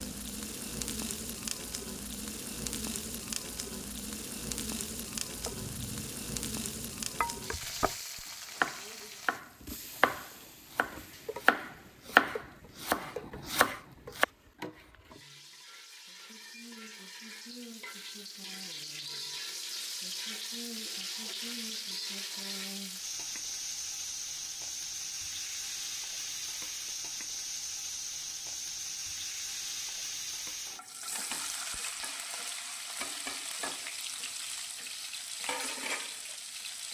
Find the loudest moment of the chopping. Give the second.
12 s.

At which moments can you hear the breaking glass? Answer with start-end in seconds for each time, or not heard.
not heard.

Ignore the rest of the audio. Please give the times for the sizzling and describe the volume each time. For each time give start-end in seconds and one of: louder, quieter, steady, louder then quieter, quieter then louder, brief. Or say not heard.
0.0-36.8 quieter then louder.